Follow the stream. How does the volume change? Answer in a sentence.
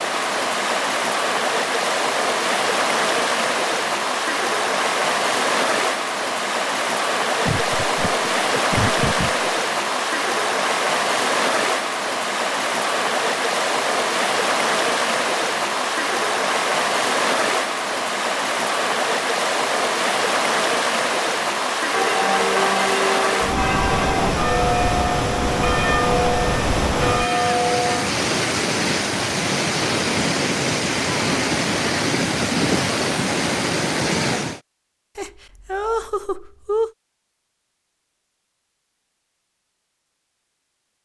The loudness of the stream stays about the same.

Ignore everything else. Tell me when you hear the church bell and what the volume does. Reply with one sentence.
The church bell can be heard from 21.9 to 28.1 s, at a steady volume.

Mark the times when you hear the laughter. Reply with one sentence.
The laughter can be heard from 7.5 to 9.4 s and from 35.1 to 36.9 s.